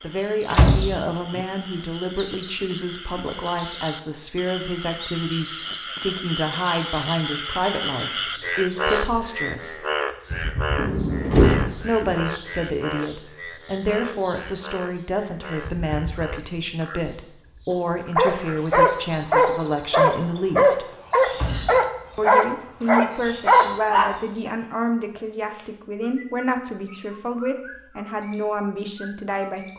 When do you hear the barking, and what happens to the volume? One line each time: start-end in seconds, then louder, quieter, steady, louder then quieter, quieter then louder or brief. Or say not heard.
18.1-24.5 steady.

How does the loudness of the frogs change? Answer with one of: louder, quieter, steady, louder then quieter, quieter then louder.
louder then quieter.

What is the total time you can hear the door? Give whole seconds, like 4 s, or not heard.
3 s.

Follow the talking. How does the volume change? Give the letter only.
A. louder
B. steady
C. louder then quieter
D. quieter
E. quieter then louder
B.